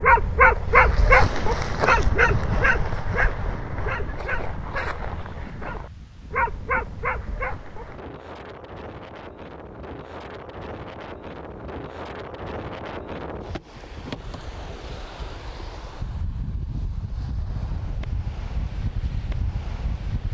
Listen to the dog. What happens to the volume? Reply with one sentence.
The volume of the dog goes down, then up.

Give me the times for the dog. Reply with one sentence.
The dog can be heard from 0.0 to 8.0 s.